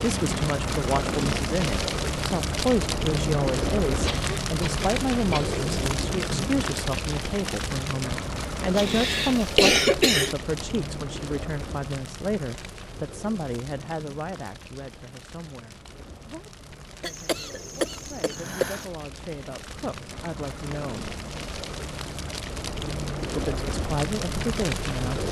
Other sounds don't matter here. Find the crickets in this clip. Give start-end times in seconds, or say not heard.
not heard.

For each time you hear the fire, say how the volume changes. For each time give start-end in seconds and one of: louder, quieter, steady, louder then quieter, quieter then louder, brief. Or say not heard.
0.0-25.2 quieter then louder.